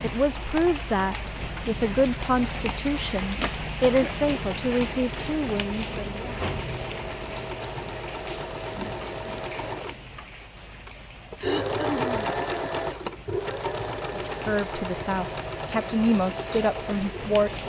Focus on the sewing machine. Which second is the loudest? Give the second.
12 s.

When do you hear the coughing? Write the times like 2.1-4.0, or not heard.
3.8-4.5, 11.4-12.3.